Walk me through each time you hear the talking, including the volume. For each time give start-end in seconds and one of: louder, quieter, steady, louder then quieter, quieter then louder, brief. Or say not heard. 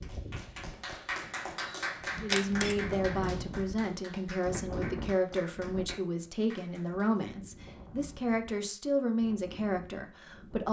2.2-10.6 steady.